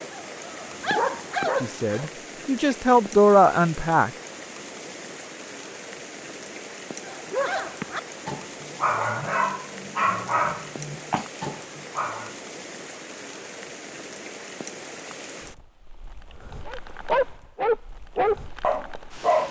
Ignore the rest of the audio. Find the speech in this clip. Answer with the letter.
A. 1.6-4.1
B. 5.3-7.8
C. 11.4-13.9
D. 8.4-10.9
A.